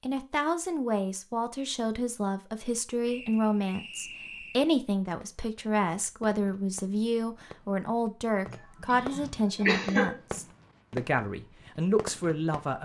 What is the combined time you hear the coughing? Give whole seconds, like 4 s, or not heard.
2 s.